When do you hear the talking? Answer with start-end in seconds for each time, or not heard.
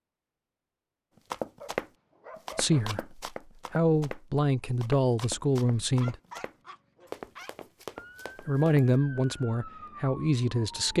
2.5-6.2, 8.4-10.9.